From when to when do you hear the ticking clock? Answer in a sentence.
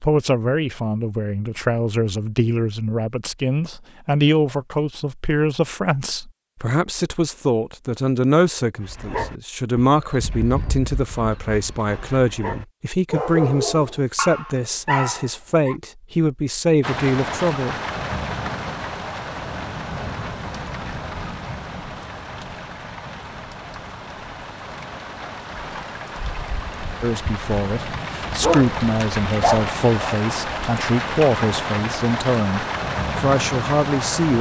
The ticking clock can't be heard in this clip.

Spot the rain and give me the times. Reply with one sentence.
You can hear the rain from 16.8 to 34.3 s.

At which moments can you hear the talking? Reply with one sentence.
The talking can be heard from 0.0 to 17.8 s and from 27.0 to 34.3 s.